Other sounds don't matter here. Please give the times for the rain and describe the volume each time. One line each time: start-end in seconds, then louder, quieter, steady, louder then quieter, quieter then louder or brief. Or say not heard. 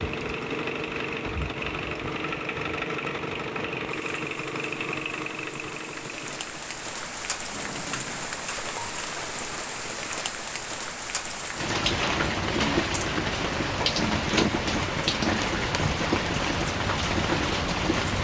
0.0-18.1 louder.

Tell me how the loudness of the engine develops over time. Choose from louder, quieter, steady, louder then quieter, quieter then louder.
quieter.